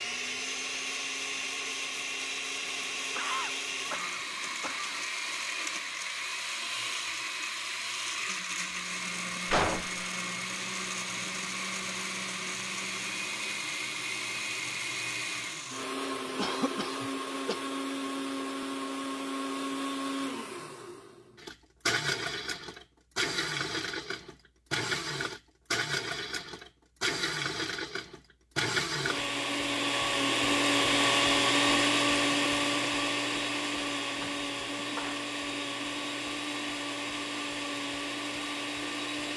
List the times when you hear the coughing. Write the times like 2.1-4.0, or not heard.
3.1-5.0, 16.4-17.6, 34.2-35.1.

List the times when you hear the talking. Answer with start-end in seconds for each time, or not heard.
not heard.